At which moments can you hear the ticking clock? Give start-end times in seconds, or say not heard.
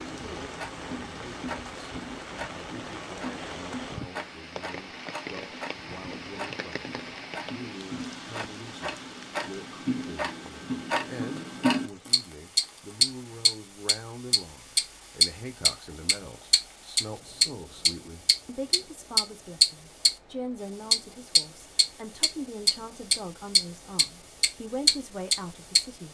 0.0-20.1, 20.9-26.1.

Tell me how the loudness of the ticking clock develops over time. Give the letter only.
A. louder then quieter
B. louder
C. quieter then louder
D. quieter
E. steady
B.